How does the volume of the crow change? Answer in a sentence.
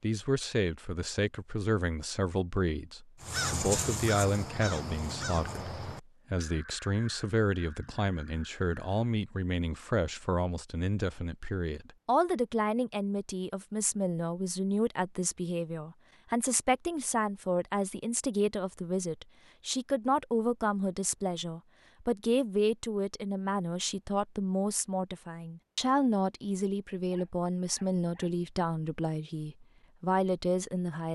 The loudness of the crow goes down.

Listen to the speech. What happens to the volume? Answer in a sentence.
The loudness of the speech stays about the same.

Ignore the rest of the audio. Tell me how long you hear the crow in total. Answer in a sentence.
You can hear the crow for 6 seconds altogether.